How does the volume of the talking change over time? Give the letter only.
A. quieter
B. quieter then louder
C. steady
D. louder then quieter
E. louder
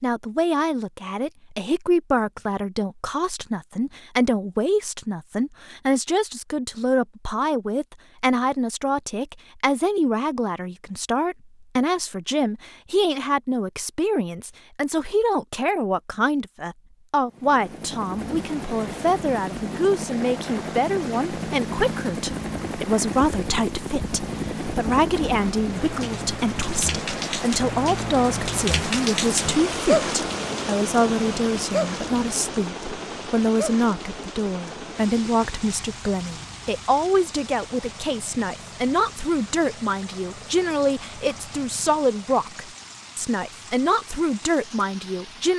C.